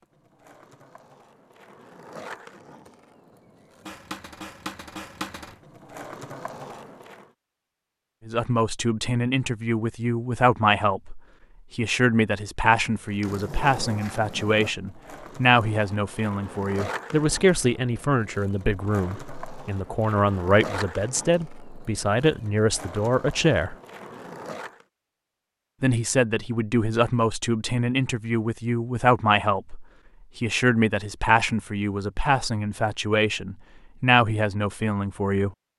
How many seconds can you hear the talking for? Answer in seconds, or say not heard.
25 s.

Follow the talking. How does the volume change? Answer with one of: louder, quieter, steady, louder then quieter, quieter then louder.
steady.